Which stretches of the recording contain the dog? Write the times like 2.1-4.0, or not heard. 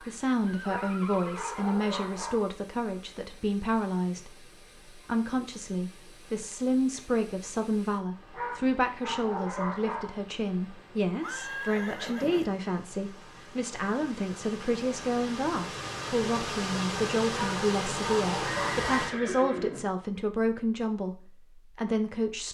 0.7-2.5, 8.3-10.2, 17.3-19.1.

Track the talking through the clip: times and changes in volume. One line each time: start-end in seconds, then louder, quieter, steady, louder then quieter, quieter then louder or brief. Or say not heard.
0.0-22.4 steady.